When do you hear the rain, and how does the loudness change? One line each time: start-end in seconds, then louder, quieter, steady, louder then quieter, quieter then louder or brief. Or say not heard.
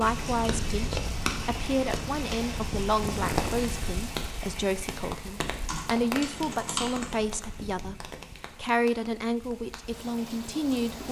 0.0-11.0 quieter.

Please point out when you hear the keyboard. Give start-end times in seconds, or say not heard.
5.7-7.2.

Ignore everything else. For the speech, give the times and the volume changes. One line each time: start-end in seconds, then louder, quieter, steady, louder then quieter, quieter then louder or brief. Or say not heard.
0.0-11.0 steady.